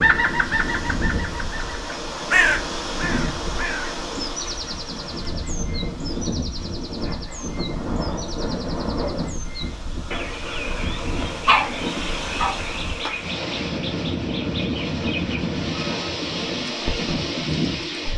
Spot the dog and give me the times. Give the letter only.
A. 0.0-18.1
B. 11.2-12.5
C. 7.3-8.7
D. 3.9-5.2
B.